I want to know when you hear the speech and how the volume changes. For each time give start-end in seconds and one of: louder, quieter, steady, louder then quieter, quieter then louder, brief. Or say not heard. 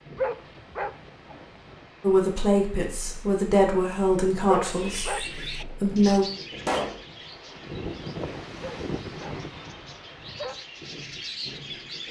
2.0-6.2 quieter.